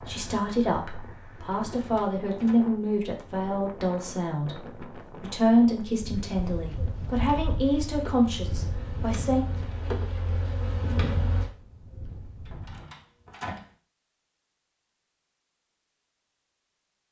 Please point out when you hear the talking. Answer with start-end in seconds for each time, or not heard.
0.0-9.4.